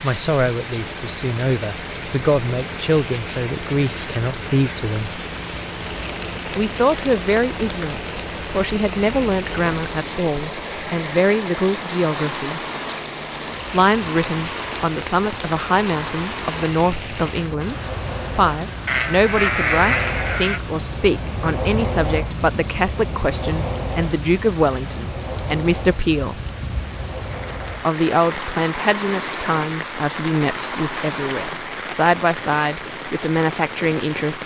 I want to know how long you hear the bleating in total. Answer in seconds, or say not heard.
2 s.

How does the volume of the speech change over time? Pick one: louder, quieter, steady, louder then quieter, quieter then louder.
steady.